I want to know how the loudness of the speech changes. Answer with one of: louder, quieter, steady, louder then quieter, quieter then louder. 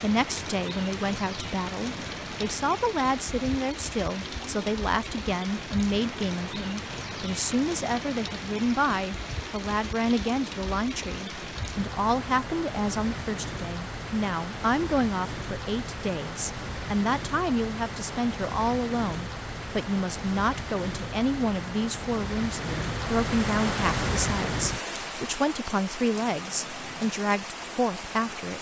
steady.